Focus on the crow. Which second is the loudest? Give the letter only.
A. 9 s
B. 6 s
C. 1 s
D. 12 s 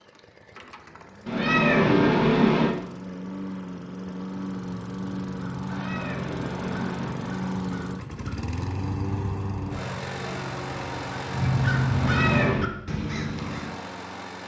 D.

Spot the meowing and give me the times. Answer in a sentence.
The meowing can be heard from 1.2 to 2.8 s, from 5.7 to 7.3 s and from 11.9 to 12.7 s.